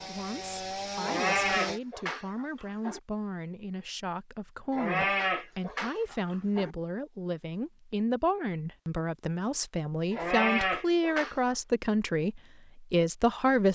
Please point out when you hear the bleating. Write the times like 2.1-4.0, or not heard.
1.0-3.0, 4.7-6.7, 10.1-11.6.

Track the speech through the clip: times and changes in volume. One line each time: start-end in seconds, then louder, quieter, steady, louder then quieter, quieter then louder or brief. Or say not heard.
0.0-13.7 louder.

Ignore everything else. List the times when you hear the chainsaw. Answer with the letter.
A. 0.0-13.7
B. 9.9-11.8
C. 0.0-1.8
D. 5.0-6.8
C.